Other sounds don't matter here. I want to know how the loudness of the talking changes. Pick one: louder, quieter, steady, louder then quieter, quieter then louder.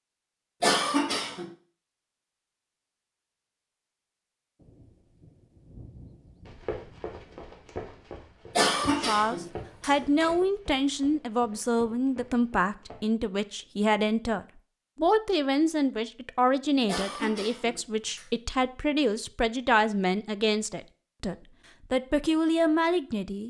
steady.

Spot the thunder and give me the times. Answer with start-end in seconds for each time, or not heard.
4.5-7.5.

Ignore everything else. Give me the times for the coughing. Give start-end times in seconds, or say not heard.
0.6-1.4, 8.6-10.3, 16.9-18.2.